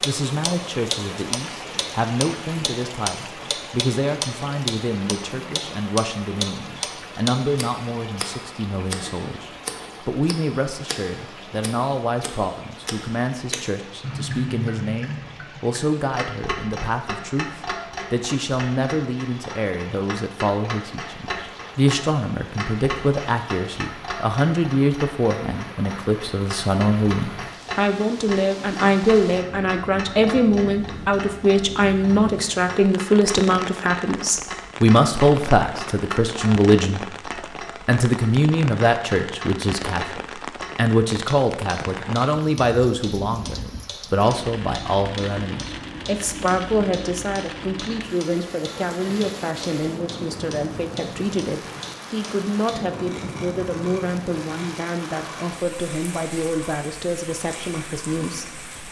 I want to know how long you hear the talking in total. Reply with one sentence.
You can hear the talking for 58 seconds altogether.